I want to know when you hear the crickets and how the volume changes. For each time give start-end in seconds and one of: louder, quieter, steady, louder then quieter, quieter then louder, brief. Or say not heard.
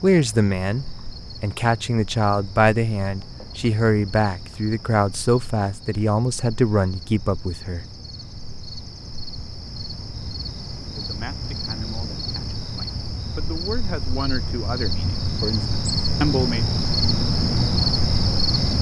0.0-18.7 louder.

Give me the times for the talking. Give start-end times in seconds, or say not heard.
0.0-7.8, 10.9-16.6.